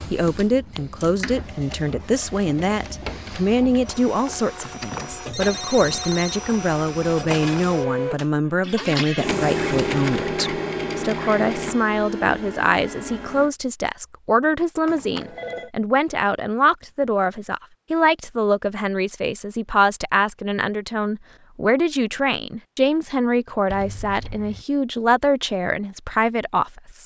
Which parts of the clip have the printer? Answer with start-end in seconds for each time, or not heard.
0.0-13.5.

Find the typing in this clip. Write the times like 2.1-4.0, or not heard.
not heard.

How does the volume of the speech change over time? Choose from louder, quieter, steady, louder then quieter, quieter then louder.
steady.